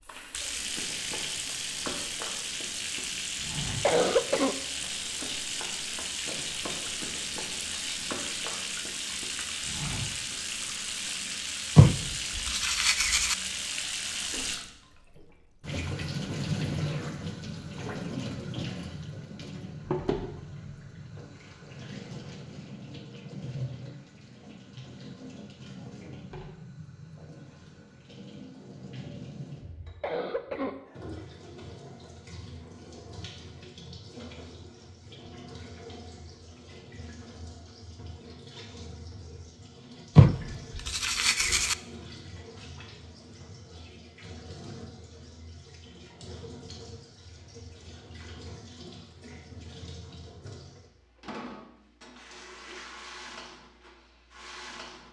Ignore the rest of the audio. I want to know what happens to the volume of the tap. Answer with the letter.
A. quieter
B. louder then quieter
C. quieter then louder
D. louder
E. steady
A.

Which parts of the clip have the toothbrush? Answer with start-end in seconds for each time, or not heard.
11.8-13.3, 40.1-41.8.